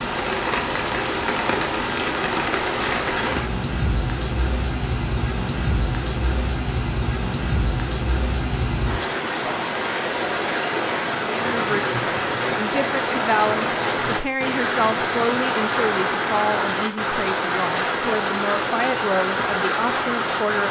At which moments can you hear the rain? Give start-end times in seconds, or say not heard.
0.0-20.6.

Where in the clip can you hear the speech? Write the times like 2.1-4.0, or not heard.
11.3-20.6.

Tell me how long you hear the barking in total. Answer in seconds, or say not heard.
not heard.